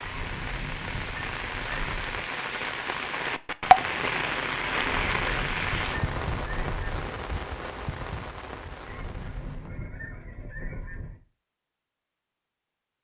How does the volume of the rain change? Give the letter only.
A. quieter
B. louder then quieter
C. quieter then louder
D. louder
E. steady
B.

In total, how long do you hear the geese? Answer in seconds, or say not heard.
7 s.